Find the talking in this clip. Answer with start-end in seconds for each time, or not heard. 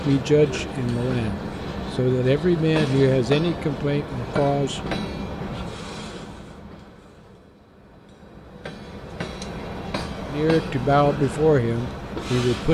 0.0-4.8, 10.2-12.6.